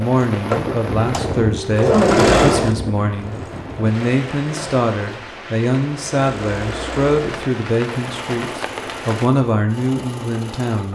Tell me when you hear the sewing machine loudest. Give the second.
2 s.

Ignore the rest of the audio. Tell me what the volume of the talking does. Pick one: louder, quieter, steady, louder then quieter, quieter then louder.
steady.